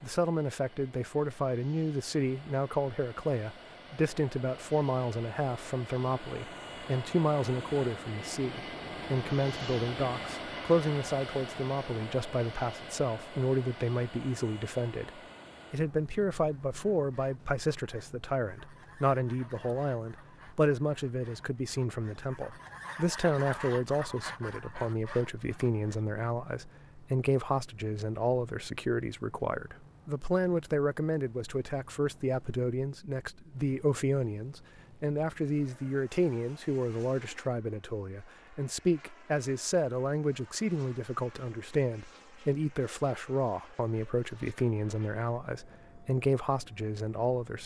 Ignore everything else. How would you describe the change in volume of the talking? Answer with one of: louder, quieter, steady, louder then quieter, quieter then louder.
steady.